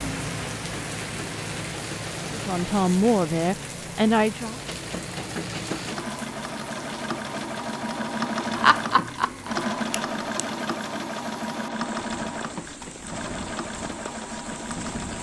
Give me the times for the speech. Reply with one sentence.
You can hear the speech from 2.3 to 4.6 s.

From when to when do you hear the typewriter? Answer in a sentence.
You can't hear the typewriter here.